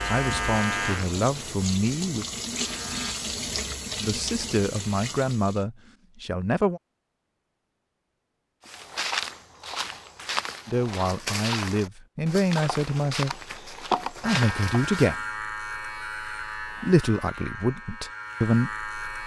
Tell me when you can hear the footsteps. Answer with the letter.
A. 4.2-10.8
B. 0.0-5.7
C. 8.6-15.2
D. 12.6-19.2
C.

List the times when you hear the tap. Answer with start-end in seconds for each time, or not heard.
0.0-5.7.